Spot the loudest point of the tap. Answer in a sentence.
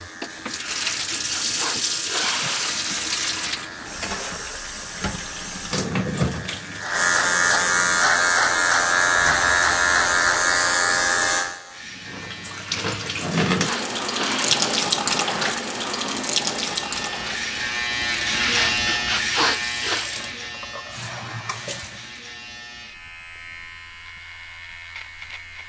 The volume of the tap peaks at 15 seconds.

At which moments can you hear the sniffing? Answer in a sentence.
You can hear the sniffing from 0.6 to 2.8 s, from 12.7 to 14.8 s and from 18.3 to 20.1 s.